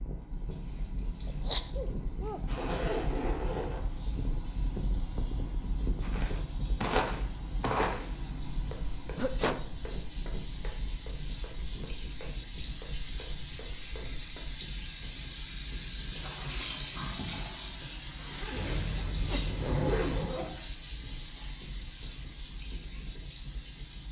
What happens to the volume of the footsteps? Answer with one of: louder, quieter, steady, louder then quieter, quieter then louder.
quieter.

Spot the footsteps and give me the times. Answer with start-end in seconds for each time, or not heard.
6.0-14.6.